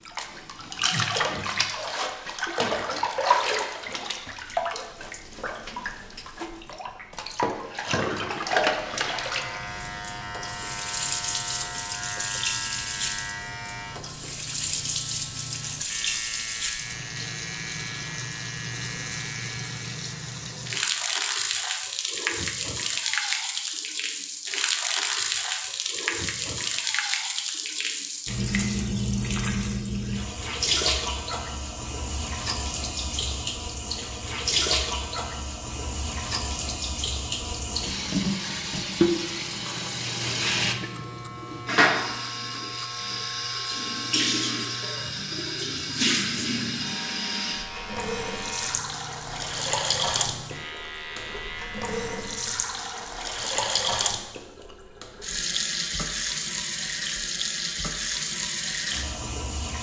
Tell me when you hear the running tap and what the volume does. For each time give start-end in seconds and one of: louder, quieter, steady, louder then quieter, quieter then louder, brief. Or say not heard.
0.0-59.7 steady.